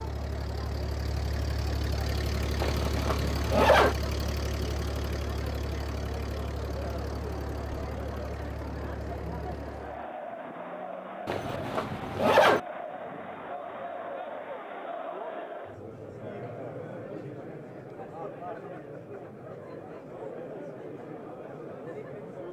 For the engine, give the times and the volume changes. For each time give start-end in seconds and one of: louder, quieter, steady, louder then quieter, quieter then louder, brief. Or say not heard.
0.0-10.1 quieter.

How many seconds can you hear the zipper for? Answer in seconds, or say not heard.
3 s.